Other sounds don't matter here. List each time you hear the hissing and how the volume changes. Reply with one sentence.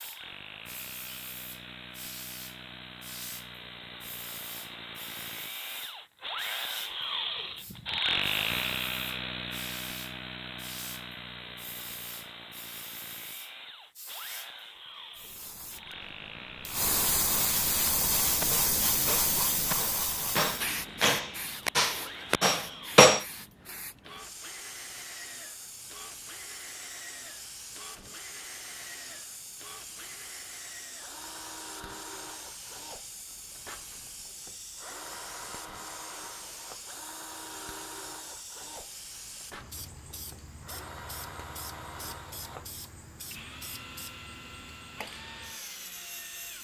You can hear the hissing from 0.0 to 46.6 s, getting louder then quieter.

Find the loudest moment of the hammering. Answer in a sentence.
The volume of the hammering peaks at 23 seconds.